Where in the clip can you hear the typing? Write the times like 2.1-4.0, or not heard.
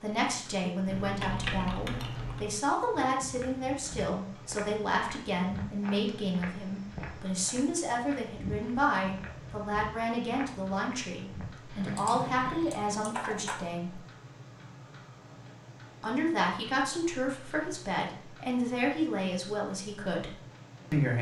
0.8-2.5, 11.9-13.7.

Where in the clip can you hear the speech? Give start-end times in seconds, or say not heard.
0.0-14.0, 16.0-21.1.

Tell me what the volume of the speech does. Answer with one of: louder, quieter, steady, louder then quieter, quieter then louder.
steady.